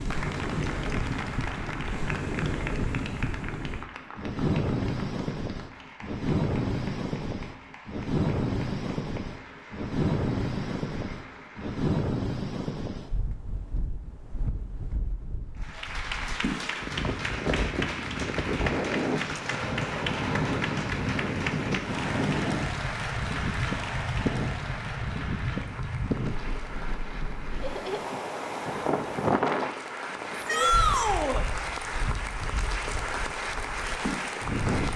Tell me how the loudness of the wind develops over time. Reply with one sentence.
The volume of the wind stays about the same.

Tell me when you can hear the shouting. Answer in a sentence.
The shouting can be heard from 30.4 to 31.4 s.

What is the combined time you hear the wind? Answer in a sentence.
You can hear the wind for 35 seconds altogether.